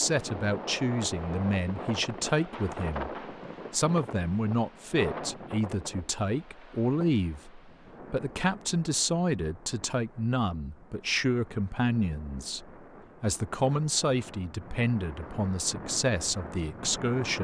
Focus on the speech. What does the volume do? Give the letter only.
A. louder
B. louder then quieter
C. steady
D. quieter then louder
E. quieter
C.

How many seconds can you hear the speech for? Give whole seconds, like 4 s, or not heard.
17 s.